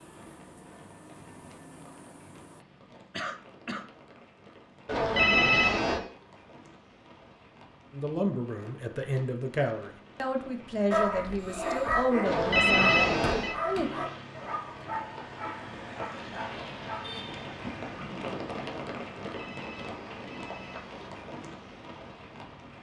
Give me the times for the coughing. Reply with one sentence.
The coughing can be heard from 3.1 to 3.9 s.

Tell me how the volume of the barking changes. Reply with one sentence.
The loudness of the barking goes down.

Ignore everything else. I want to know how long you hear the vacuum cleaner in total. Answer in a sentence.
You can hear the vacuum cleaner for 3 seconds altogether.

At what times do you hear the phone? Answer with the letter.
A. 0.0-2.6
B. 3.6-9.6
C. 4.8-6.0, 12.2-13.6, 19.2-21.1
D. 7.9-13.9
C.